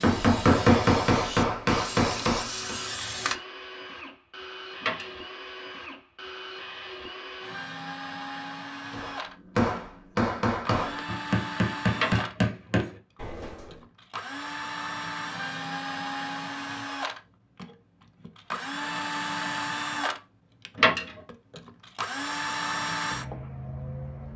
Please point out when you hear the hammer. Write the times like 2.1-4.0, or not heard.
0.0-2.8, 8.9-13.8.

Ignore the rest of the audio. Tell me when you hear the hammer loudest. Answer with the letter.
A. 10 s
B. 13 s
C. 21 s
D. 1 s
D.